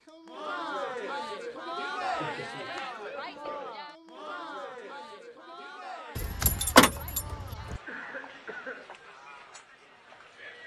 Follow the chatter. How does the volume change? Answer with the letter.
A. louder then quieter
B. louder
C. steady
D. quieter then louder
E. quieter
E.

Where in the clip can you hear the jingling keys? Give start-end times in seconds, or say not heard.
6.2-7.8.